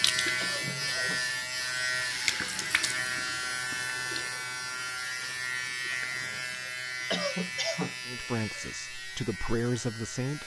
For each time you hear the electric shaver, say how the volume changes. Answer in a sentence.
You can hear the electric shaver from 0.0 to 10.4 s, getting quieter.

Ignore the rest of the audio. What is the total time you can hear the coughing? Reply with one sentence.
The coughing can be heard for 2 seconds in total.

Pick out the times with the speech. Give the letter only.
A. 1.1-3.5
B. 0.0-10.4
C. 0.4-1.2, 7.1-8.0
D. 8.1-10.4
D.